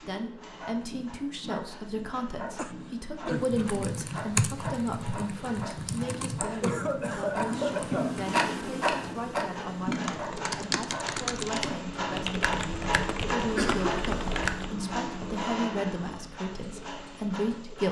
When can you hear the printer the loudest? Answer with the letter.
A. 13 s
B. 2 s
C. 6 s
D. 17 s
A.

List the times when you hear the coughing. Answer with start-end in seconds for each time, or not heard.
2.5-3.7, 6.6-8.2, 13.5-14.4.